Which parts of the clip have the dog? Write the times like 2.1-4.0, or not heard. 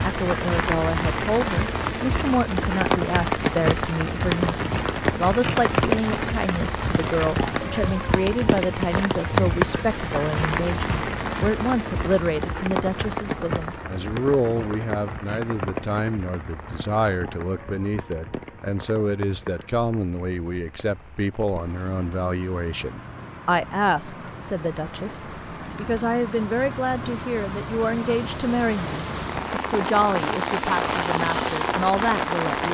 not heard.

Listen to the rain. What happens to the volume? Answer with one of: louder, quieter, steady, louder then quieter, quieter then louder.
quieter then louder.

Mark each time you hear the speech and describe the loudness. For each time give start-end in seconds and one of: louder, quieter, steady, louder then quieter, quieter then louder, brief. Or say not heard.
0.0-32.6 steady.